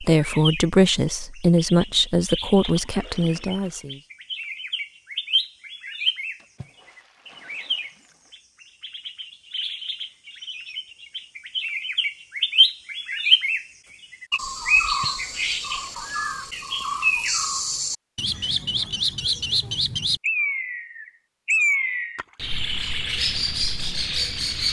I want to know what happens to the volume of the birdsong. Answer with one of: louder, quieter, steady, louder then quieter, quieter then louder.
louder.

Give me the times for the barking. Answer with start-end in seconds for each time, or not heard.
not heard.